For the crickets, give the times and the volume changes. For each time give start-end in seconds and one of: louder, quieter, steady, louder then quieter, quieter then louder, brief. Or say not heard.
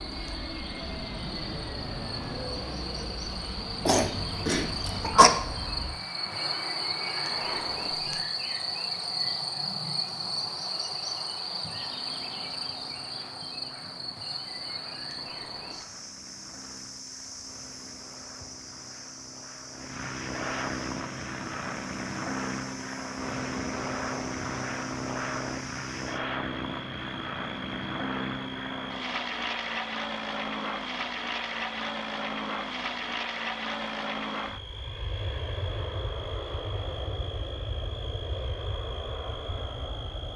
0.0-40.3 quieter.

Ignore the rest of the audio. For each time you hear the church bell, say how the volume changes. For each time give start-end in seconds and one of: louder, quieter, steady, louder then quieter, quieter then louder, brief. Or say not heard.
not heard.